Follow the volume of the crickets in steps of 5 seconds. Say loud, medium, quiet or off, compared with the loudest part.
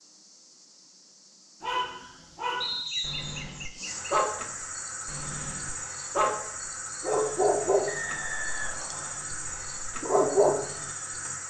medium, loud, loud.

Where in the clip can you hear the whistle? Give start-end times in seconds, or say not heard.
2.6-3.5, 7.8-9.2.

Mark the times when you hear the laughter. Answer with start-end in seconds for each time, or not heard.
2.9-4.2.